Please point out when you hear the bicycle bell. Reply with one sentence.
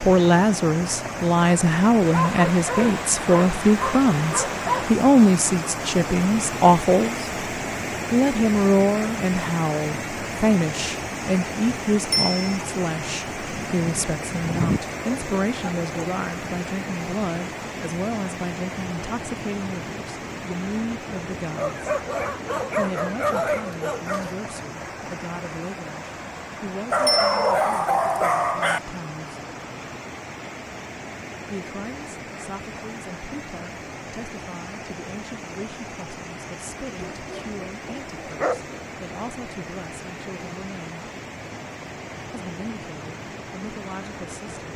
The bicycle bell can be heard from 12.1 to 12.6 s and from 27.1 to 27.5 s.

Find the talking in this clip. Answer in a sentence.
You can hear the talking from 0.0 to 7.3 s, from 8.1 to 21.9 s, from 22.8 to 29.4 s, from 31.4 to 41.0 s and from 42.3 to 44.7 s.